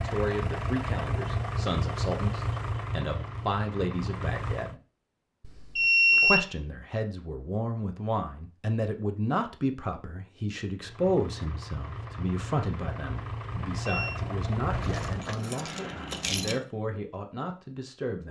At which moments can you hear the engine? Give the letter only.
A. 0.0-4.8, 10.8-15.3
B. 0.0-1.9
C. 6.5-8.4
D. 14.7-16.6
A.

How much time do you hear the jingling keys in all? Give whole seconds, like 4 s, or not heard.
2 s.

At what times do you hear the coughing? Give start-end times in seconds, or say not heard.
not heard.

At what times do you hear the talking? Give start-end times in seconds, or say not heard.
0.0-4.8, 6.2-18.2.